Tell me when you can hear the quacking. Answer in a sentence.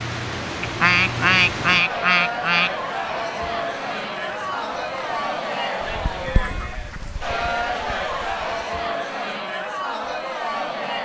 You can hear the quacking from 0.6 to 2.7 s and from 5.8 to 8.6 s.